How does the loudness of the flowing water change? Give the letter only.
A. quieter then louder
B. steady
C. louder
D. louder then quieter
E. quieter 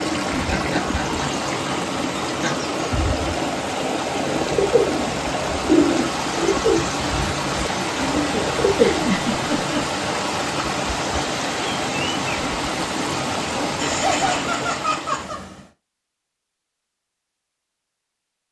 B.